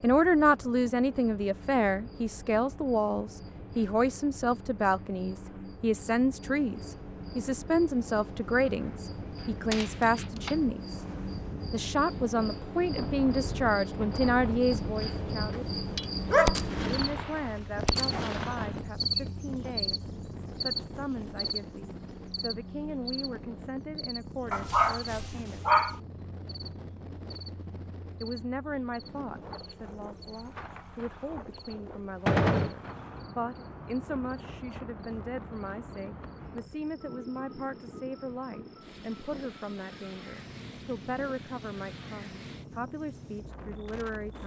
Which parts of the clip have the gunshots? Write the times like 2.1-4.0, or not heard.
8.7-10.6, 15.9-18.7, 32.2-32.8.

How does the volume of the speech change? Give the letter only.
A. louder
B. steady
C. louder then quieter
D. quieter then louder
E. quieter
E.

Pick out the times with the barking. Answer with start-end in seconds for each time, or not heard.
16.2-18.4, 24.5-26.0.